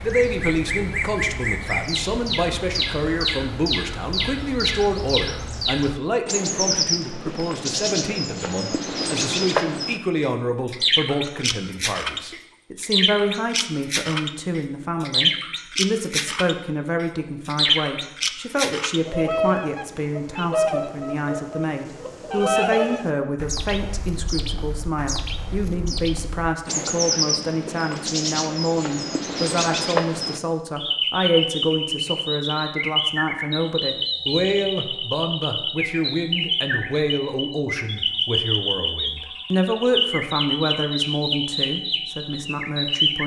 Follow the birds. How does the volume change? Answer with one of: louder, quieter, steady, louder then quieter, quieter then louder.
steady.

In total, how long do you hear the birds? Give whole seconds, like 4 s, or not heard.
43 s.